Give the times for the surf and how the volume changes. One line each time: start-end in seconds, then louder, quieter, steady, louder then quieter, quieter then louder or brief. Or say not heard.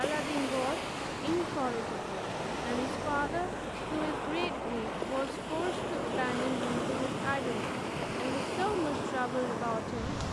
0.0-10.2 steady.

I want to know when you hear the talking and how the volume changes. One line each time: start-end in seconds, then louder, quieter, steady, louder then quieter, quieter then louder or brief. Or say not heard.
0.0-10.2 steady.